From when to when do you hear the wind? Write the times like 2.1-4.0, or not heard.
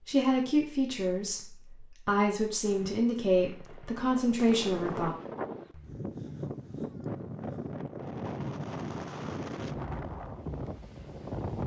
4.0-11.6.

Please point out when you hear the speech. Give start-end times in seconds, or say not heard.
0.1-5.1.